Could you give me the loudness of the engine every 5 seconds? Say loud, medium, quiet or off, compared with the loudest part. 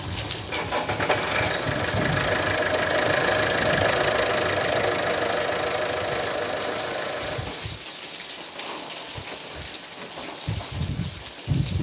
loud, loud, off.